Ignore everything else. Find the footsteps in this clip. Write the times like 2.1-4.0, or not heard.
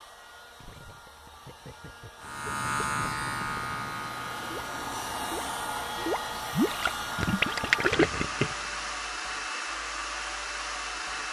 not heard.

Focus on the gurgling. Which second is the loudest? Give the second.
8 s.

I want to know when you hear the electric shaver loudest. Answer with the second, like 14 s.
3 s.